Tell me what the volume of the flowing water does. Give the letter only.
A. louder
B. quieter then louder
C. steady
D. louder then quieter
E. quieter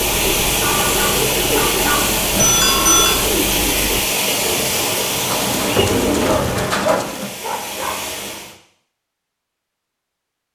E.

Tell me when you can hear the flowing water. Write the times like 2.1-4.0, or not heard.
0.0-8.6.